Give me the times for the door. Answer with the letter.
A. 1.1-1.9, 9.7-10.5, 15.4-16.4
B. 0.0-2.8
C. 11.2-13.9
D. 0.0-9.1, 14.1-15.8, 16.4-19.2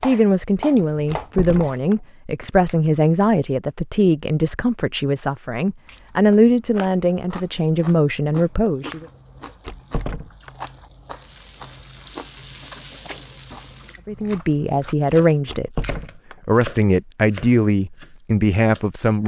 A.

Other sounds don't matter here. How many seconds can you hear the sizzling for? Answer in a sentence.
You can hear the sizzling for 3 seconds altogether.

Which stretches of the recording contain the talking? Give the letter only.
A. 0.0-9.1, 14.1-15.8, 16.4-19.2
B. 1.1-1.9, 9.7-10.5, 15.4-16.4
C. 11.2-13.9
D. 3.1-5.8
A.